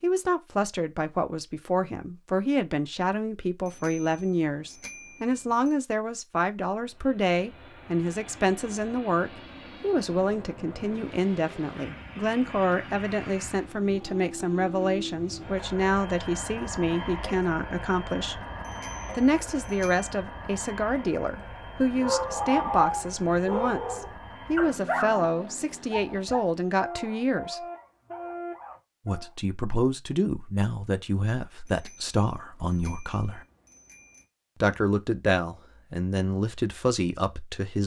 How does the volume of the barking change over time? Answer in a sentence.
The loudness of the barking goes down.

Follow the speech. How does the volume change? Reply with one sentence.
The loudness of the speech stays about the same.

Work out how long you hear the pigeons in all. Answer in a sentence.
You can't hear the pigeons here.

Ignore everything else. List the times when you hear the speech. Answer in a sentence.
The speech can be heard from 0.0 to 18.4 s, from 19.1 to 27.6 s, from 29.1 to 33.5 s and from 34.6 to 37.8 s.